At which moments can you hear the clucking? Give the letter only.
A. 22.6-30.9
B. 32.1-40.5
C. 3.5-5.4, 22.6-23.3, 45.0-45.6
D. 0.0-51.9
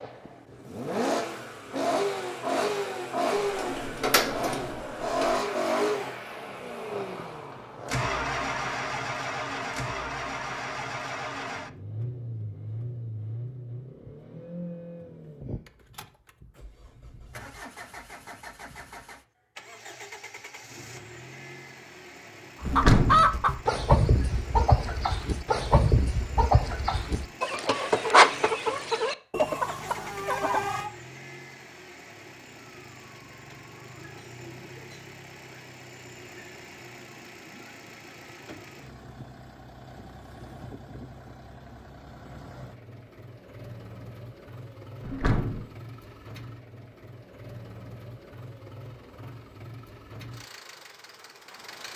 A.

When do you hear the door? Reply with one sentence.
You can hear the door from 3.5 to 5.4 s, from 22.6 to 23.3 s and from 45.0 to 45.6 s.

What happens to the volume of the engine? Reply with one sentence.
The loudness of the engine goes down.